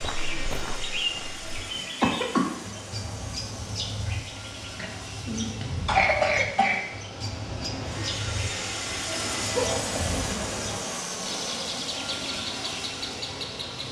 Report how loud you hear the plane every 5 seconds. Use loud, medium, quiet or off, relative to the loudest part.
medium, loud, loud.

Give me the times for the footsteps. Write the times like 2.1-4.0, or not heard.
0.0-1.4.